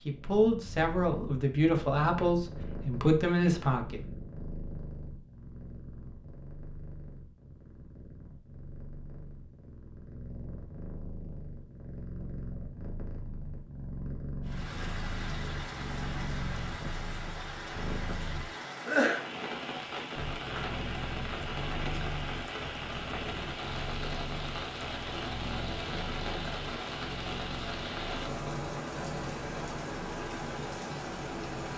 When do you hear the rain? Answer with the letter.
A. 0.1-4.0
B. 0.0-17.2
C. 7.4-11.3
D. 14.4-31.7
D.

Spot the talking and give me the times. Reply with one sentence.
You can hear the talking from 0.1 to 4.0 s.